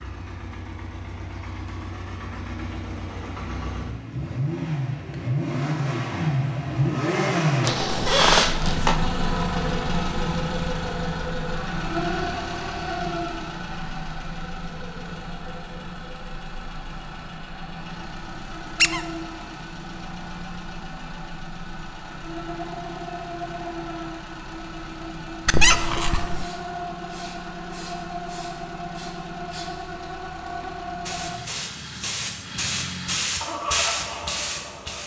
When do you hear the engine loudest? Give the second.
7 s.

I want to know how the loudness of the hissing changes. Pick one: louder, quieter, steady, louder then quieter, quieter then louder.
louder.